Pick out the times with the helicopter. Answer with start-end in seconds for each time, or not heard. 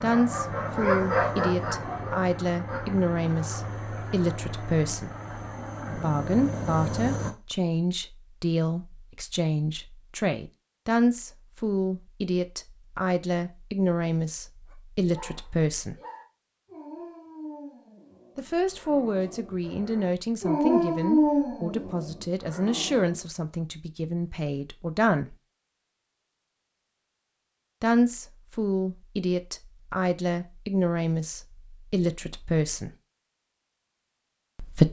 0.0-7.3.